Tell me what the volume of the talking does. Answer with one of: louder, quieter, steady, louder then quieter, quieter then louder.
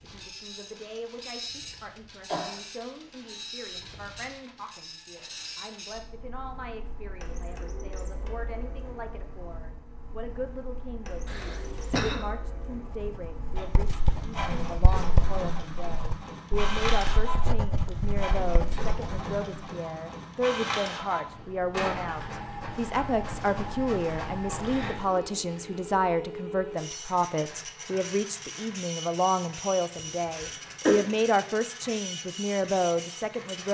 louder.